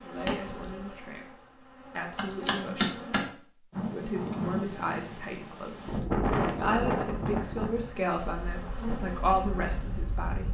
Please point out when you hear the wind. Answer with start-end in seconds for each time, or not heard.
3.7-10.4.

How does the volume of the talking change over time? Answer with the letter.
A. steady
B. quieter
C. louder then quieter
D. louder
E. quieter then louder
D.